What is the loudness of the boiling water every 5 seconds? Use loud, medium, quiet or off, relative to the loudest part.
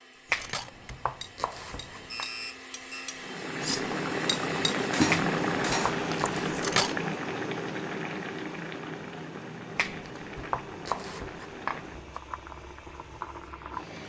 loud, loud, medium.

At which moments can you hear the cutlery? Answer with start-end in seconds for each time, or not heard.
0.3-7.0.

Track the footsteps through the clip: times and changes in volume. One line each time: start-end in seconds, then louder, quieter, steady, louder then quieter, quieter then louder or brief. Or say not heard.
not heard.